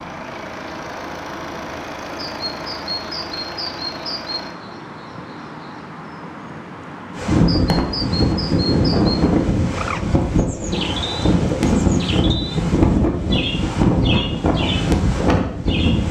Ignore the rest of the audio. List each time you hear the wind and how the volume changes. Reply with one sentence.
You can hear the wind from 7.2 to 16.0 s, at a steady volume.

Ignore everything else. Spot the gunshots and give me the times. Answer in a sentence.
The gunshots can't be heard in this clip.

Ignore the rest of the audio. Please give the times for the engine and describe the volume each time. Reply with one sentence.
The engine can be heard from 0.0 to 4.5 s, at a steady volume.